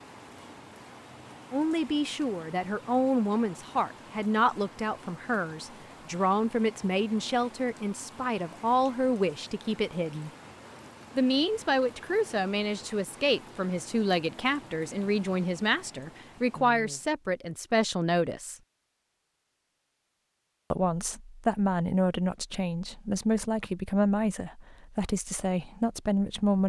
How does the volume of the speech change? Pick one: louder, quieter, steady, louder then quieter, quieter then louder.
steady.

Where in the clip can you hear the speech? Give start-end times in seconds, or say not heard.
1.5-10.3, 11.2-18.6, 20.7-26.6.